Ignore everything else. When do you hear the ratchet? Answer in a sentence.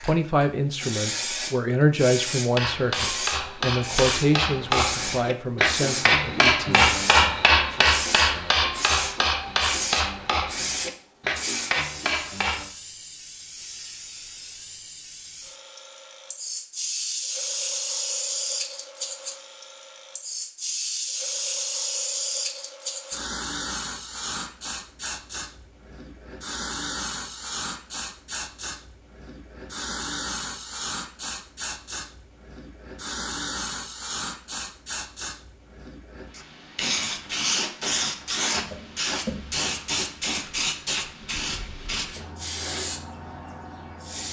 You can't hear the ratchet here.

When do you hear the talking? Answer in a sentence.
You can hear the talking from 0.0 to 7.0 s.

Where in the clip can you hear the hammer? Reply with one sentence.
You can hear the hammer from 2.5 to 12.7 s.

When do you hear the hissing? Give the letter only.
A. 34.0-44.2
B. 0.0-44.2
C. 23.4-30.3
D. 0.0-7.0
B.